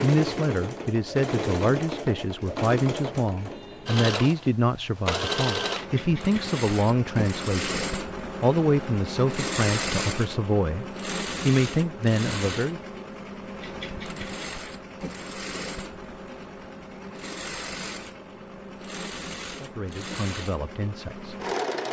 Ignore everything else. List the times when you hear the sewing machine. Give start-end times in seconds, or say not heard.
0.0-21.8.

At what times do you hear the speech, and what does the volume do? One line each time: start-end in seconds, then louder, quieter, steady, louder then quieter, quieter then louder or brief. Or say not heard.
0.0-12.8 steady
19.6-21.4 brief.